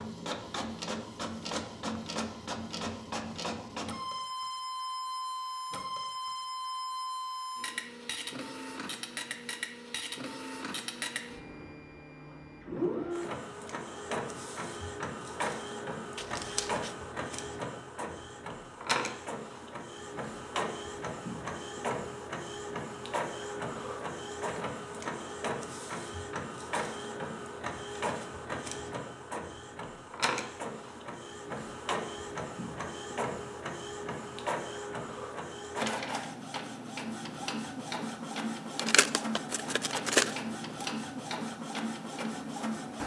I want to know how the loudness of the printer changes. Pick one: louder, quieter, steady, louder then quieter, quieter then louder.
steady.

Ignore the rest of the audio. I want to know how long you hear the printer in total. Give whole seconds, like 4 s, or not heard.
43 s.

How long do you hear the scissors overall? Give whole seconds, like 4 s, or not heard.
3 s.